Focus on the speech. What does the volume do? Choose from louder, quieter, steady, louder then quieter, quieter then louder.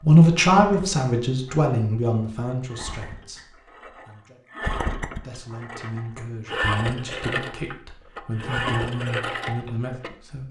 quieter.